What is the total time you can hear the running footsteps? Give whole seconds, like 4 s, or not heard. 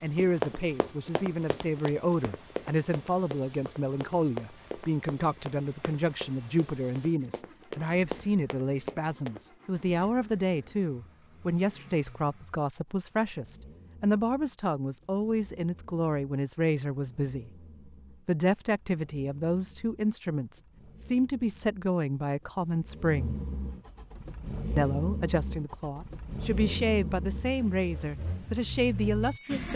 9 s.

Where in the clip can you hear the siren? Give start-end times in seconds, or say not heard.
not heard.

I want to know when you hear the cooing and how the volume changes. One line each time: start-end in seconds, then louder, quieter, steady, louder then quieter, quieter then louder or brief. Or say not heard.
not heard.